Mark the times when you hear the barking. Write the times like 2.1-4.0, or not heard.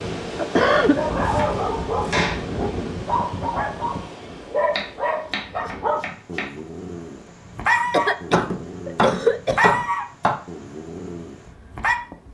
0.9-11.9.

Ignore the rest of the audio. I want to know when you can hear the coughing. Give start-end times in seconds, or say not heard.
0.3-1.0, 7.9-9.8.